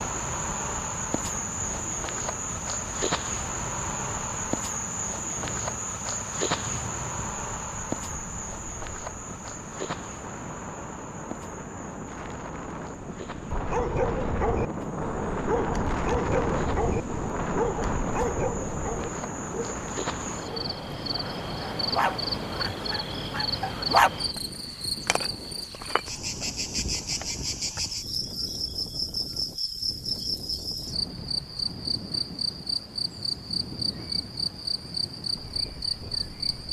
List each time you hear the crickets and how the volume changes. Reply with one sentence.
You can hear the crickets from 0.0 to 36.6 s, getting quieter then louder.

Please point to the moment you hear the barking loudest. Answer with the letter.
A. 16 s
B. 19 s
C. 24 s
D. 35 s
C.